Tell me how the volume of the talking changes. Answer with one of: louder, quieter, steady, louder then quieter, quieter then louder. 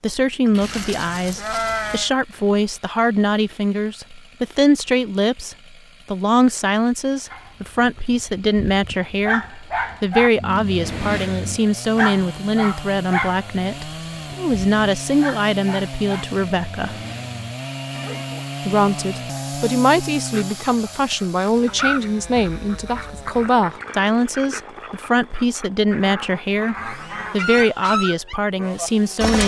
steady.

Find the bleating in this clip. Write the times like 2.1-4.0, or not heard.
0.6-2.1.